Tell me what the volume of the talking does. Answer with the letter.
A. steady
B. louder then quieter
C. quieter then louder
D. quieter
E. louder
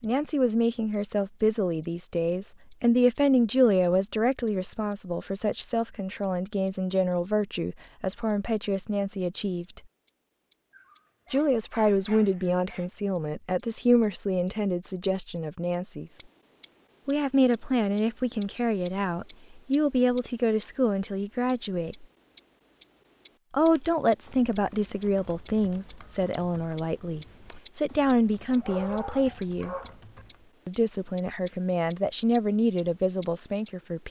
A.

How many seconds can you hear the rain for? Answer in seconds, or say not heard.
not heard.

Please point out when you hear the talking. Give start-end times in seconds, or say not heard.
0.0-9.8, 11.3-16.1, 17.1-22.1, 23.5-29.8, 30.6-34.0.